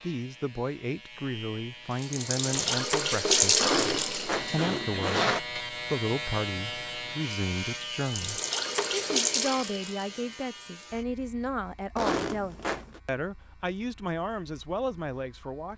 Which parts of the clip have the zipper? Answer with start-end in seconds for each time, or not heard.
3.6-5.4, 11.9-13.0.